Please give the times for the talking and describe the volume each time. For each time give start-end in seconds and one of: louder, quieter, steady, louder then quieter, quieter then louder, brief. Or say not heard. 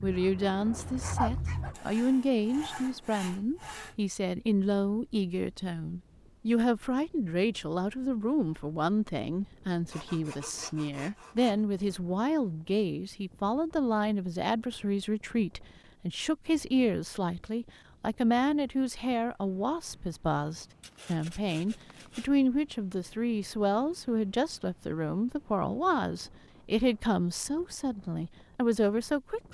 0.0-29.4 steady.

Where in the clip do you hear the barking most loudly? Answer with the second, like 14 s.
1 s.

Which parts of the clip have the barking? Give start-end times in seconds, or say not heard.
0.0-1.8.